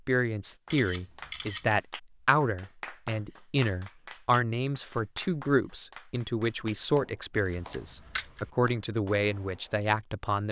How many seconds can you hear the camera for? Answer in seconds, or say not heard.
2 s.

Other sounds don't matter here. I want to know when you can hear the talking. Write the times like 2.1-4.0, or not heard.
0.1-10.4.